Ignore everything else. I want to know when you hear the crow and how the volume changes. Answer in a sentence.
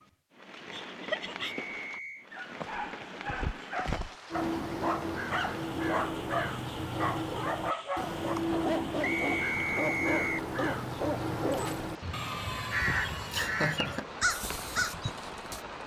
The crow can be heard from 4.3 to 15.6 s, at a steady volume.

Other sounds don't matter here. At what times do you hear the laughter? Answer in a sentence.
The laughter can be heard from 0.7 to 1.6 s and from 13.3 to 14.1 s.